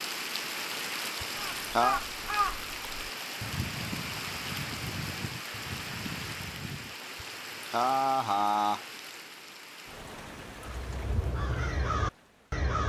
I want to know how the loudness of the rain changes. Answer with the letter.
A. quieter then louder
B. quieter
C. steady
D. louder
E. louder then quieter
B.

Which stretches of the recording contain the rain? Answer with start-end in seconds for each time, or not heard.
0.0-12.7.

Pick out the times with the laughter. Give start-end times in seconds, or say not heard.
1.2-2.0, 7.2-8.8.